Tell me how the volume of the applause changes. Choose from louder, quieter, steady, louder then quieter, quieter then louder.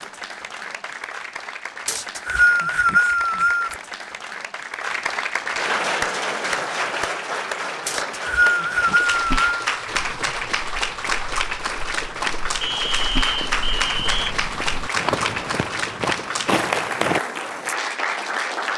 louder.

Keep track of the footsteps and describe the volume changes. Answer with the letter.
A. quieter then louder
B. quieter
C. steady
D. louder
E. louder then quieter
D.